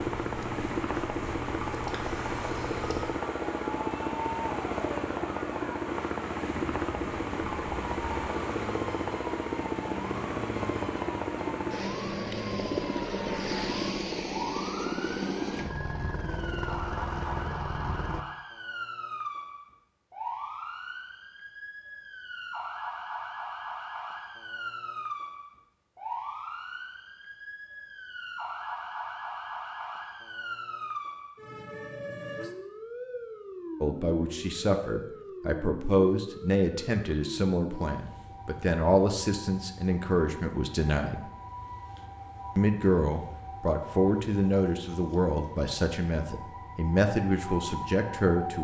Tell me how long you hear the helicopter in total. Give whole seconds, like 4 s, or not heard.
18 s.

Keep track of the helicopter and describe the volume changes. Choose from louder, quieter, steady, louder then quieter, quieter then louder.
steady.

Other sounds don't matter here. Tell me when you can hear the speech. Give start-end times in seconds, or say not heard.
33.8-41.2, 42.5-48.5.